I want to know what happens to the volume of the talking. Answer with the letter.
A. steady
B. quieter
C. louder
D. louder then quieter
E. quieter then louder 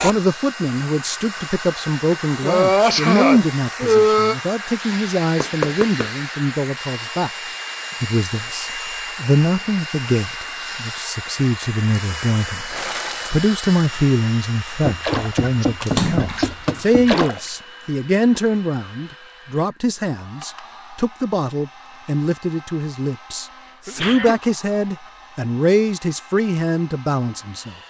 A.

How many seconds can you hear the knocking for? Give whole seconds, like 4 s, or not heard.
3 s.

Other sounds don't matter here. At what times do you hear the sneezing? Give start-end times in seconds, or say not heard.
2.4-4.3, 15.4-16.6, 23.9-24.4.